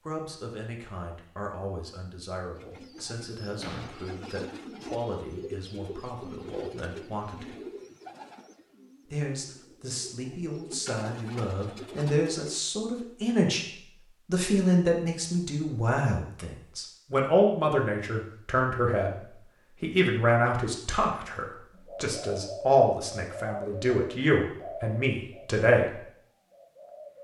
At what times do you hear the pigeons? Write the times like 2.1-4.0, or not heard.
2.5-12.6, 21.7-27.1.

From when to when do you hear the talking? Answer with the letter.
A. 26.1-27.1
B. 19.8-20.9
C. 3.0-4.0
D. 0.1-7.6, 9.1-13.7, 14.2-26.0
D.